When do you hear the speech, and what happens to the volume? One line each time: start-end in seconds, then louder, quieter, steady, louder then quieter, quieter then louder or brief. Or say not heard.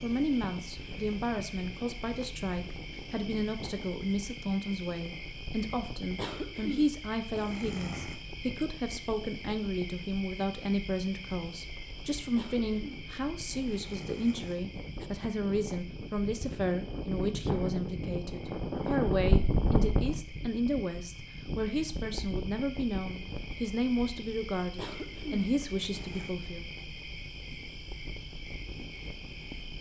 0.0-26.6 steady.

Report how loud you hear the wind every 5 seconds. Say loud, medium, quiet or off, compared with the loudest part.
quiet, quiet, quiet, loud, medium, quiet.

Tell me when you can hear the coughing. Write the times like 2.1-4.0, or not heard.
6.2-8.2, 12.3-15.1, 24.8-26.4.